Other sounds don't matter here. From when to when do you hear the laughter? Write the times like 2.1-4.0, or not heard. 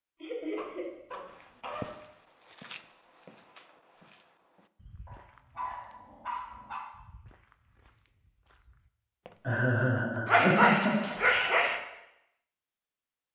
0.2-0.9, 9.4-11.1.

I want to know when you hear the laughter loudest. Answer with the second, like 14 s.
11 s.